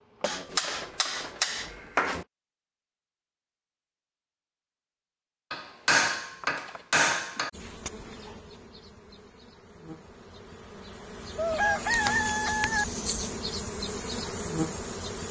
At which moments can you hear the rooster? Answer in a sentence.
The rooster can be heard from 11.3 to 12.8 s.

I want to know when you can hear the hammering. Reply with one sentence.
You can hear the hammering from 0.2 to 2.2 s, from 5.5 to 7.5 s and from 11.7 to 13.3 s.